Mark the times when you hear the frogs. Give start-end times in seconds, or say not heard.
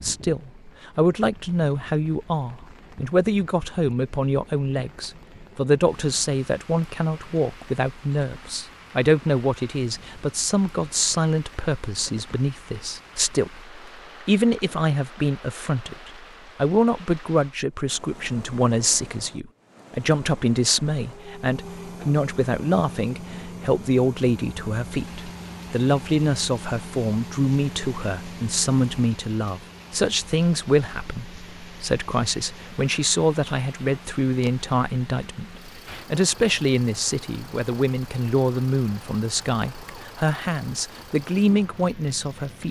not heard.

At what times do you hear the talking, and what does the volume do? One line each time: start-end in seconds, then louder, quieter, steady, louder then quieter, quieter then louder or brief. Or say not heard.
0.0-42.6 steady.